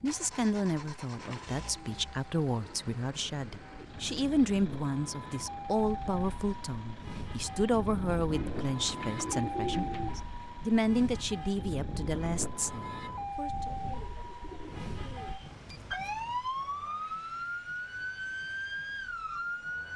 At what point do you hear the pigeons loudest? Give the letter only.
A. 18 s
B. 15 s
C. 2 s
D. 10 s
D.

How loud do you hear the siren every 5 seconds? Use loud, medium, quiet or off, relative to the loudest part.
quiet, loud, loud, loud.